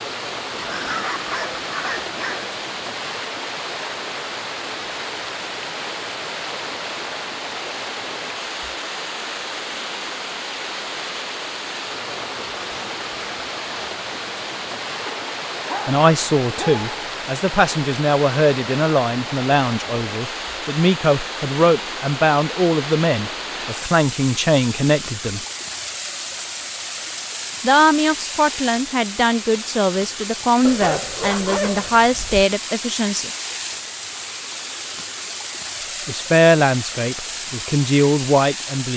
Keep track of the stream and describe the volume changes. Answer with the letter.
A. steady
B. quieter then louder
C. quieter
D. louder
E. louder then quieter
A.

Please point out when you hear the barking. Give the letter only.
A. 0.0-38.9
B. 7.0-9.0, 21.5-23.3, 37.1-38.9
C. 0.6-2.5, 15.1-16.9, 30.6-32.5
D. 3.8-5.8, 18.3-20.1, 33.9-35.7
C.